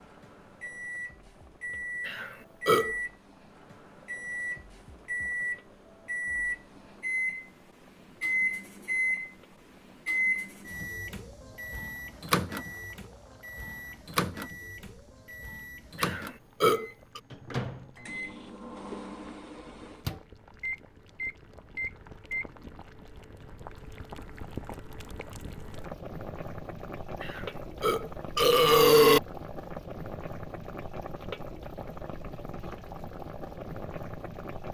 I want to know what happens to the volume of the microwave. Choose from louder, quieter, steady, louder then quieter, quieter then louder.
louder then quieter.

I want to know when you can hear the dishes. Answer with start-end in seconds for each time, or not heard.
not heard.